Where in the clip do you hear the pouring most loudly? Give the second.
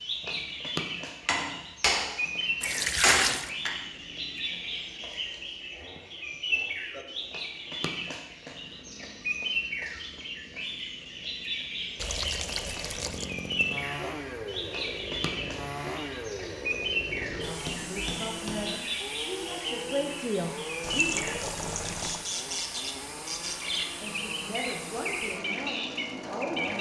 3 s.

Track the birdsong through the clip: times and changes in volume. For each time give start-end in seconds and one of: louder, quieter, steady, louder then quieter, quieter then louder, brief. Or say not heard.
0.0-26.7 steady.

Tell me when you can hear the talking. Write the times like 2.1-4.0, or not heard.
17.4-21.2, 24.0-26.7.